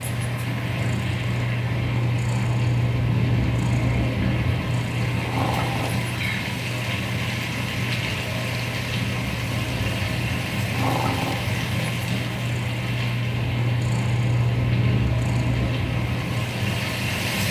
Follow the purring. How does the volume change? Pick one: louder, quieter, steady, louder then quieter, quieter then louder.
quieter then louder.